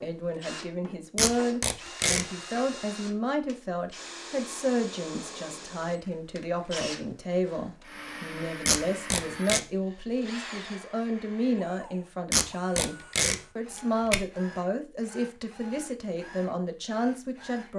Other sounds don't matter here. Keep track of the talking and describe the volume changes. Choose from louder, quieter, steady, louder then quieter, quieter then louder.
steady.